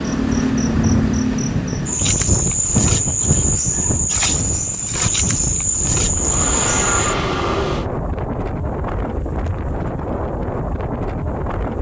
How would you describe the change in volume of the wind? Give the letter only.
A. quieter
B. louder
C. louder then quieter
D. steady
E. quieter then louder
D.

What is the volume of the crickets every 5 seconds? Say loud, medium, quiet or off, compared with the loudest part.
loud, loud, off.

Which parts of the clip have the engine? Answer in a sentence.
You can hear the engine from 6.0 to 7.8 s.